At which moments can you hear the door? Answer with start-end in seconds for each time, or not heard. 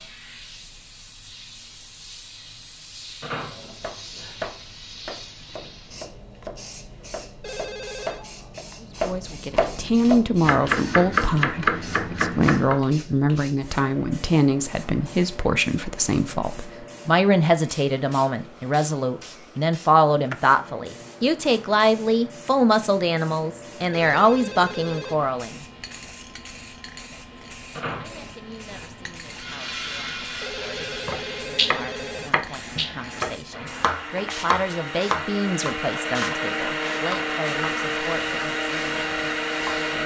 3.2-4.5, 27.8-28.9.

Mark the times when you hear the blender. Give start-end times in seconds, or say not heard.
29.2-40.0.